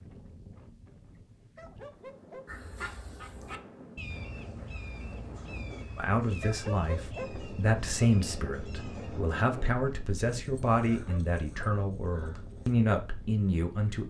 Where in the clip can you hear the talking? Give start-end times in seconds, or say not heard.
6.0-14.0.